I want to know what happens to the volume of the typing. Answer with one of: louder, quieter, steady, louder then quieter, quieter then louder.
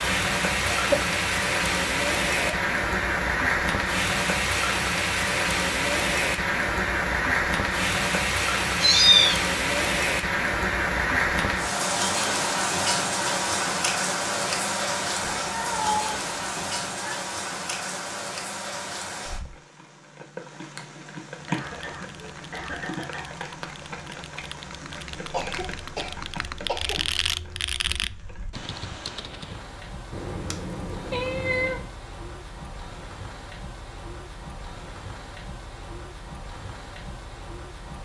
louder.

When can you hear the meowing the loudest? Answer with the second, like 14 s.
9 s.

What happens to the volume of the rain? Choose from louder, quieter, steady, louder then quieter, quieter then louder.
quieter.